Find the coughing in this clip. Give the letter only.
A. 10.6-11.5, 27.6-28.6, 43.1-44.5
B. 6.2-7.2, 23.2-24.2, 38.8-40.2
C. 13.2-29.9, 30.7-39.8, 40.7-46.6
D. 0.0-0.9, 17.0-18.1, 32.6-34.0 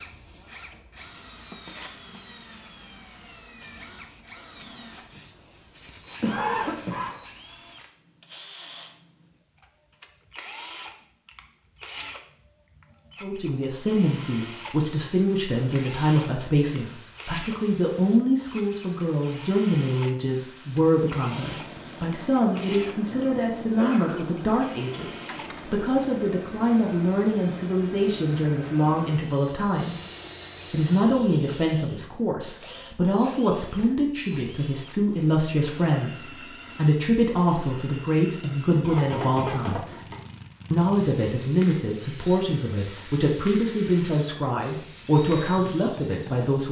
B.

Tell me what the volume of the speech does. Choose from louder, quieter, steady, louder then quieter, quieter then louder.
steady.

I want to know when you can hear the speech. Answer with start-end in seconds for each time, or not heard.
13.2-29.9, 30.7-39.8, 40.7-46.6.